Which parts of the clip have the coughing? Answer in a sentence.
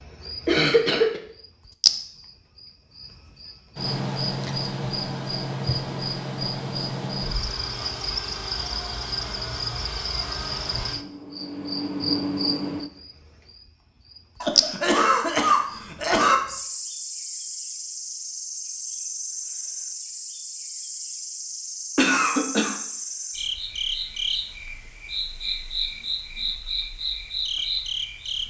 The coughing can be heard from 0.5 to 1.2 s, from 14.4 to 16.4 s and from 21.9 to 22.8 s.